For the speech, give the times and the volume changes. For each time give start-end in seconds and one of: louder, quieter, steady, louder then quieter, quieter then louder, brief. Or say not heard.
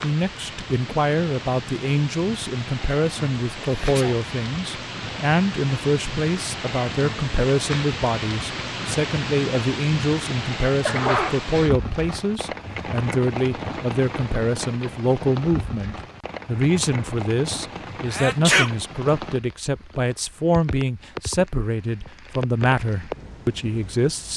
0.0-24.3 steady.